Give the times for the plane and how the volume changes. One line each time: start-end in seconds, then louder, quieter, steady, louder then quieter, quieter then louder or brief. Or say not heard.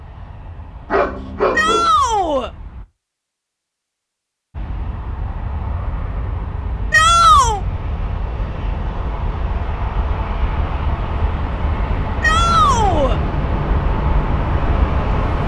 0.0-2.9 brief
4.5-15.4 louder.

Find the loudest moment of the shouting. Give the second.
7 s.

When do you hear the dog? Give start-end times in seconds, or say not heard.
0.9-1.9.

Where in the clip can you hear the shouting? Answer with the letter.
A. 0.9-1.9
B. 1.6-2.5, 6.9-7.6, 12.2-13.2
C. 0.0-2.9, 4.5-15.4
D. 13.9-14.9
B.